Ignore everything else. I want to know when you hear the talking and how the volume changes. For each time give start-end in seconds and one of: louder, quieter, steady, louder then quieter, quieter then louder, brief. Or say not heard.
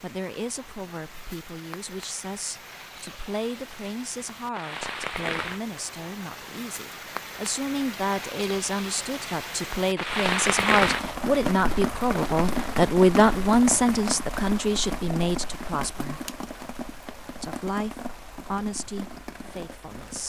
0.0-16.2 louder
17.4-20.2 brief.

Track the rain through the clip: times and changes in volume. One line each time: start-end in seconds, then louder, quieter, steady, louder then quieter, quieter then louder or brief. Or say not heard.
0.0-20.2 louder then quieter.